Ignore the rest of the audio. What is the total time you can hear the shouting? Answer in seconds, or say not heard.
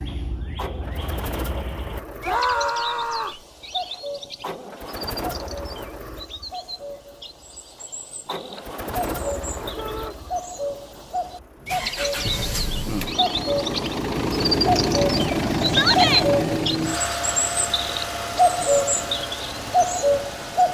2 s.